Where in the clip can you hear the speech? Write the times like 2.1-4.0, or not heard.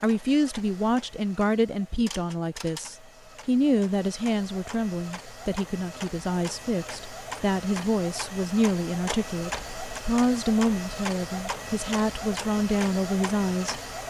0.0-13.8.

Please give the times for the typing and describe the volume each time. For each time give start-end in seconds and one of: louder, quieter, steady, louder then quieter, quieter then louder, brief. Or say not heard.
not heard.